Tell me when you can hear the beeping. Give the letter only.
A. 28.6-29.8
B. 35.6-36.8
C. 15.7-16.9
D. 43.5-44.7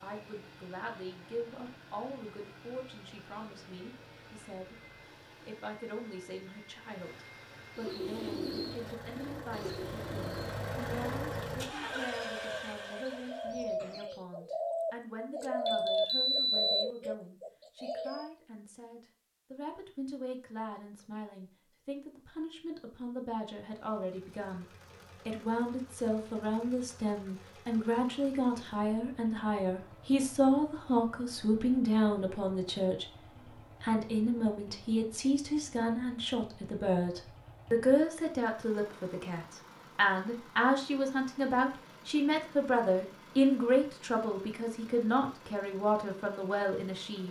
C.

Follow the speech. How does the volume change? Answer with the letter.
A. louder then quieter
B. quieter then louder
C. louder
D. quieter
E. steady
C.